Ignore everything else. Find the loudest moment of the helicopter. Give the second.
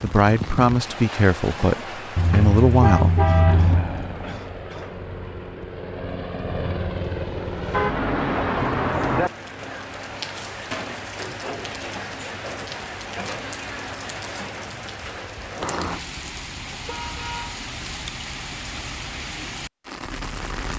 7 s.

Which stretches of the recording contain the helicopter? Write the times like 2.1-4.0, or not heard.
3.4-8.0.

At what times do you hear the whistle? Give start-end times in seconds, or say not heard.
not heard.